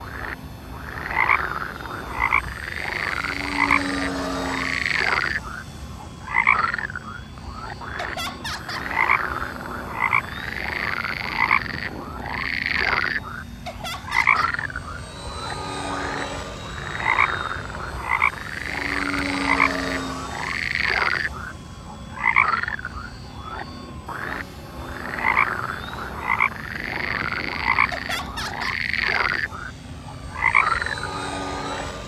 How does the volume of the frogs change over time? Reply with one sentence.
The volume of the frogs stays about the same.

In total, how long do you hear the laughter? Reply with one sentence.
The laughter can be heard for 3 seconds in total.